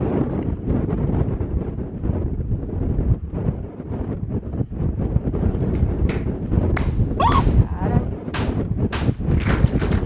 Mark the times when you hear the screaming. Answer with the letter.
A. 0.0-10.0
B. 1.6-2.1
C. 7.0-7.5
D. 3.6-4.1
C.